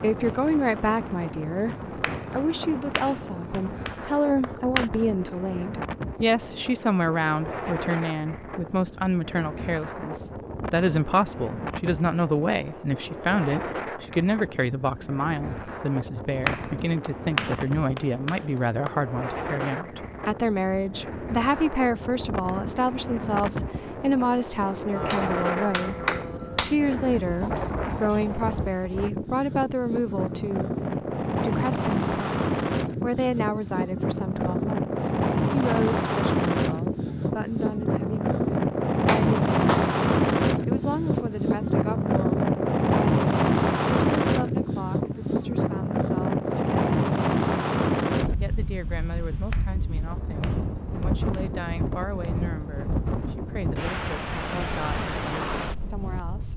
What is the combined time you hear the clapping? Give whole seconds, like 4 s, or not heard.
11 s.